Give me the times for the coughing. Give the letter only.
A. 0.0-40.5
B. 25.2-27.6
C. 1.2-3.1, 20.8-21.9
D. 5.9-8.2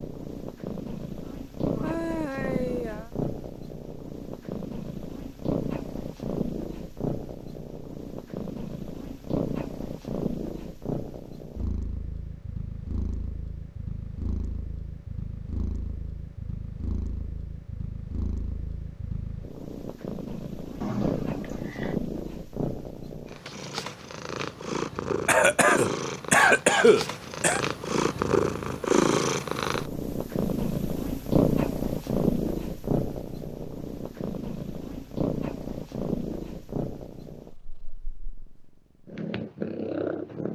B.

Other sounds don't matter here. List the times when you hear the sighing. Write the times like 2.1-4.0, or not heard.
1.2-3.1, 20.8-21.9.